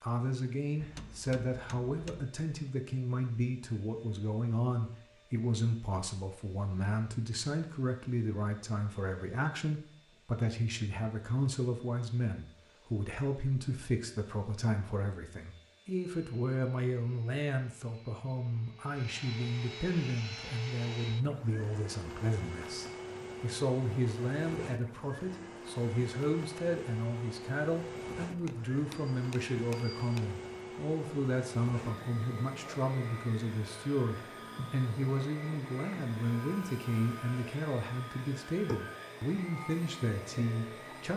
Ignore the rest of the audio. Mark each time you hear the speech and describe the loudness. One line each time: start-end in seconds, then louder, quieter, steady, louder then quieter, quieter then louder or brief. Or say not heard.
0.0-41.1 steady.